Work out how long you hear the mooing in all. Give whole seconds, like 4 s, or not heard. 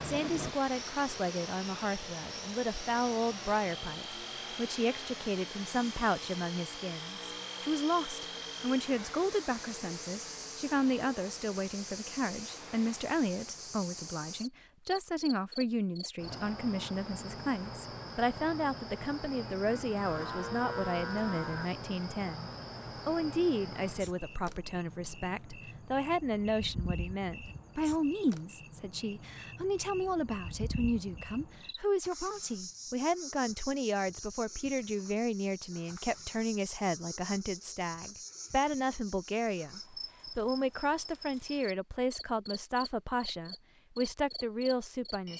2 s.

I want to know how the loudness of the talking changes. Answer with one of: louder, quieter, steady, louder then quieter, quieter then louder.
steady.